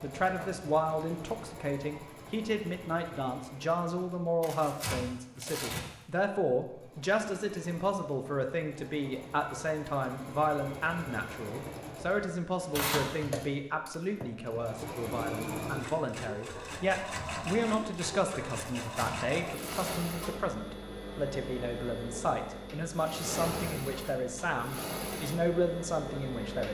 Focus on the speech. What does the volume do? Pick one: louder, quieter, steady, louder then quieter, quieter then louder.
steady.